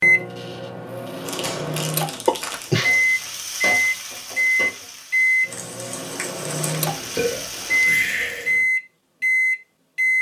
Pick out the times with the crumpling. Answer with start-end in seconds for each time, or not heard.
1.2-2.8, 5.5-6.8.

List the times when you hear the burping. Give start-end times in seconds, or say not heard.
2.2-3.0, 7.0-8.7.